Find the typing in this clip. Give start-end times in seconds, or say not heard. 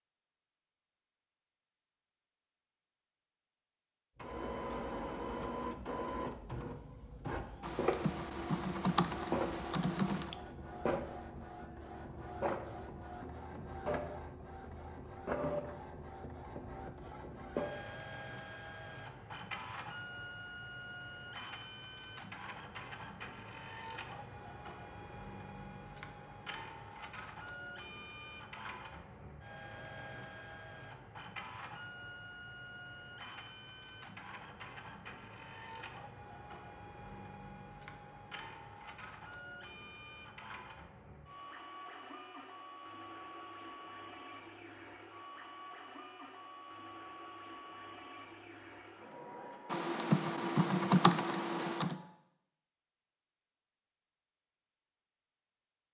7.6-10.3, 49.7-52.0.